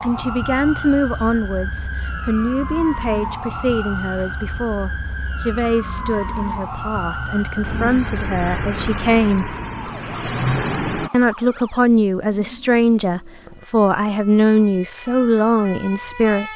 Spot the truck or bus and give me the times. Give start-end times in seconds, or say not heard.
7.6-11.1.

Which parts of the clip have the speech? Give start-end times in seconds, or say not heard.
0.0-9.6, 11.1-16.5.